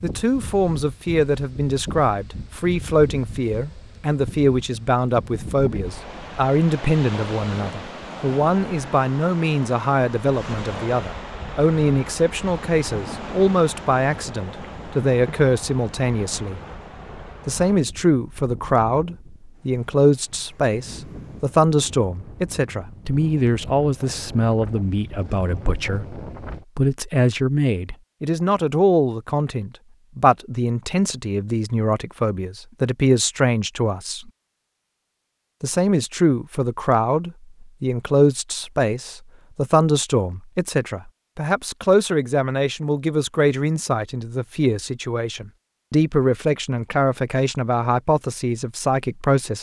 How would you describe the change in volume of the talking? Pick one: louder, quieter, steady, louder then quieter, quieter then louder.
steady.